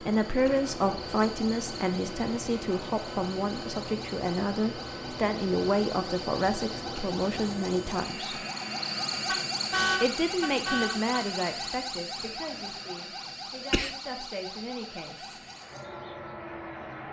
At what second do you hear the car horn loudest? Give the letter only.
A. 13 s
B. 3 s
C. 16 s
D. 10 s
D.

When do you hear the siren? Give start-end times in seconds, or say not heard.
0.0-17.0.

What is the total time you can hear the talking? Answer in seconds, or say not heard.
14 s.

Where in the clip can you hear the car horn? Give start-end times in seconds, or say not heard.
9.1-11.2.